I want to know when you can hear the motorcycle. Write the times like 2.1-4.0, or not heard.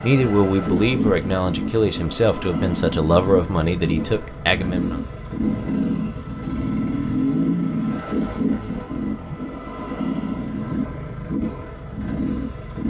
0.0-12.8.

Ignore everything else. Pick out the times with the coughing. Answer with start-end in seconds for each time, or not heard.
not heard.